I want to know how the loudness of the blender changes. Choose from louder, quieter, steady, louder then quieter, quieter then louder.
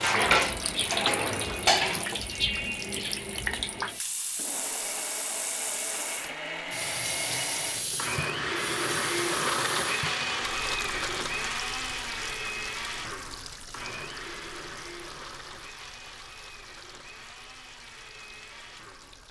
louder then quieter.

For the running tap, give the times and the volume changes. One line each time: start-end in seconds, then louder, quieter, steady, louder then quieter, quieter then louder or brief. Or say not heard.
0.0-19.2 quieter.